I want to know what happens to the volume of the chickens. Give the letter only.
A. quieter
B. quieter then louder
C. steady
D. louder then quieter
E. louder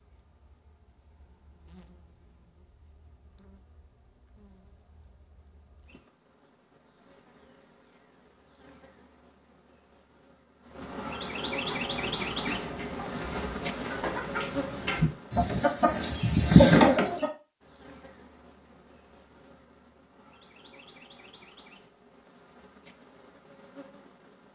E.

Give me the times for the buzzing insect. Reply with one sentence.
The buzzing insect can be heard from 0.0 to 15.5 s and from 17.6 to 24.4 s.